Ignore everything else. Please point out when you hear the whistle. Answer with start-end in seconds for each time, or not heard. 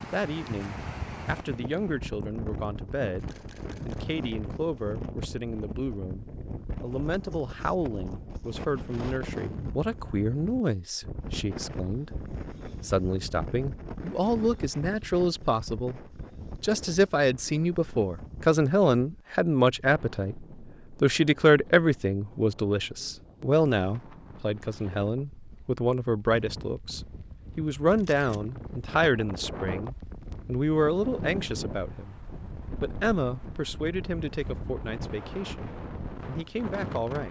not heard.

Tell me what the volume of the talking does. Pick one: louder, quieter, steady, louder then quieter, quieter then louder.
louder then quieter.